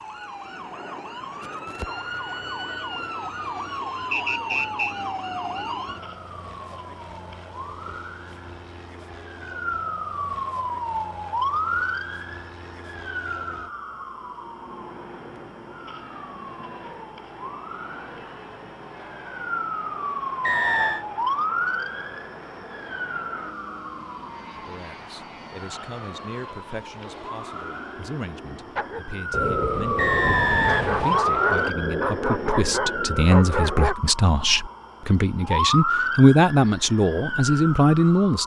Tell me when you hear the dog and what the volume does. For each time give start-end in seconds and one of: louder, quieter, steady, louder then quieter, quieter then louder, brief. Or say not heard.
28.8-34.0 steady.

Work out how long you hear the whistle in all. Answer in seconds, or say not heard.
3 s.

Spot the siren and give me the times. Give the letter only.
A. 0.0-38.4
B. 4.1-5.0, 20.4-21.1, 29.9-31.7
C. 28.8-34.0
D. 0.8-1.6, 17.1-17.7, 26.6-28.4
A.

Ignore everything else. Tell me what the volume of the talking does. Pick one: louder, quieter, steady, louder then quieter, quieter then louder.
louder.